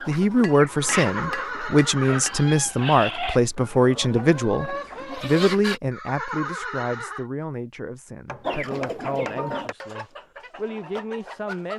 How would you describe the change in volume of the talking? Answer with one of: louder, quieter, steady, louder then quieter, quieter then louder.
quieter.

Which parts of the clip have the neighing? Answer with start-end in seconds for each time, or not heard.
0.8-2.4, 5.9-7.2.